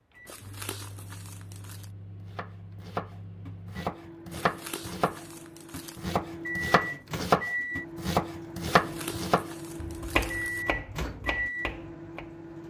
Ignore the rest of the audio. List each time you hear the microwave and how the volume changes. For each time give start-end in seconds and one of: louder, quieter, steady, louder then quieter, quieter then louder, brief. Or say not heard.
0.1-12.6 louder.